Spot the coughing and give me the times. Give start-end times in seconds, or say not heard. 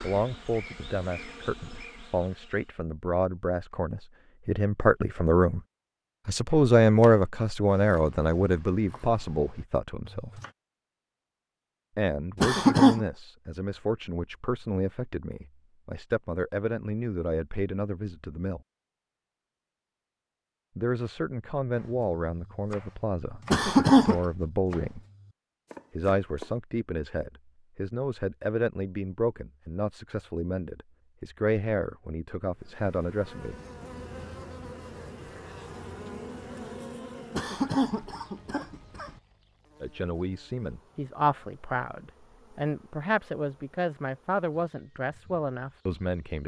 12.4-13.1, 23.5-24.2, 37.4-39.1.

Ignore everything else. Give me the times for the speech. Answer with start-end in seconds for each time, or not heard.
0.0-5.6, 6.2-10.4, 11.9-18.6, 20.8-25.0, 25.9-33.5, 39.8-46.4.